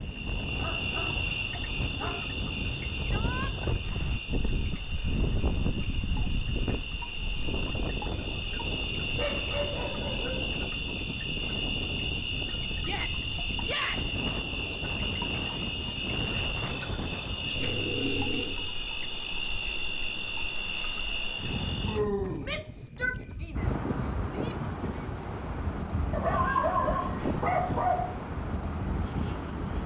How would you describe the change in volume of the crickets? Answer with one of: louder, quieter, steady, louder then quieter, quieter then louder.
steady.